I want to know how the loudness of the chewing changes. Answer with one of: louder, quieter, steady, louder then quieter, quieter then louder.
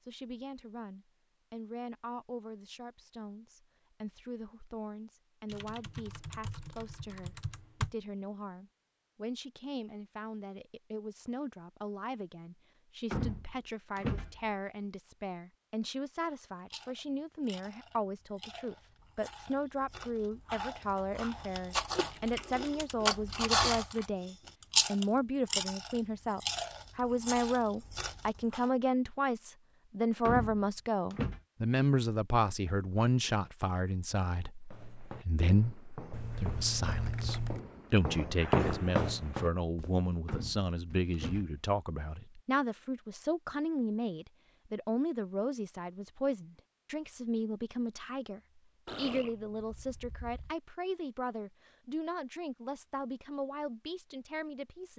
louder then quieter.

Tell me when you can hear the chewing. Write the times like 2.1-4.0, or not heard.
16.7-24.1, 24.7-28.6.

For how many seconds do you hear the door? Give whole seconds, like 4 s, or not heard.
4 s.